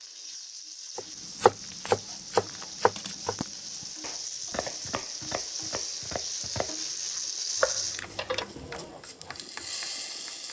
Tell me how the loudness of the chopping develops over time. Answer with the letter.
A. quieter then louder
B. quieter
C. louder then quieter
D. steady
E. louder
A.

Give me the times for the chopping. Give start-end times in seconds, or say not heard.
0.9-9.3.